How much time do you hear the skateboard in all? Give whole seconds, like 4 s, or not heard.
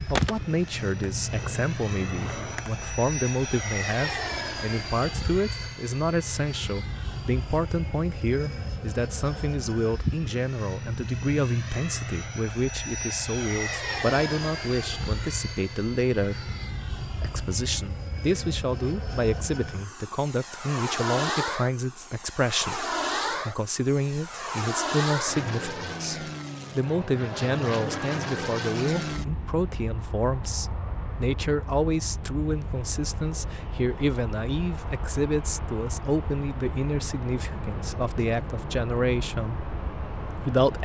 3 s.